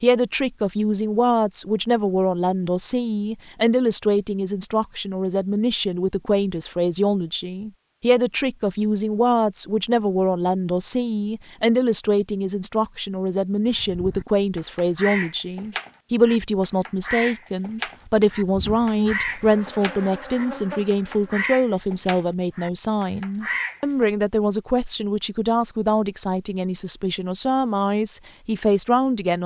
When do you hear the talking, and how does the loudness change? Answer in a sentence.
The talking can be heard from 0.0 to 29.4 s, at a steady volume.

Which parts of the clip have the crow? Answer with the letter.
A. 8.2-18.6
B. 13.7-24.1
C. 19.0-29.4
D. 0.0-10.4
B.